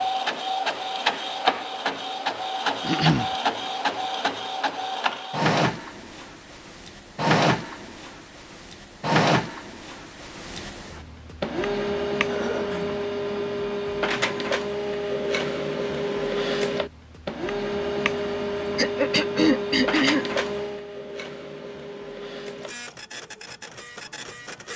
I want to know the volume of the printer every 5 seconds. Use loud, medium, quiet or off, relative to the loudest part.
loud, loud, loud, loud, medium.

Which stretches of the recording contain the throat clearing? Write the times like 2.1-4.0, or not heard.
2.8-3.4, 12.2-12.9, 18.8-20.2.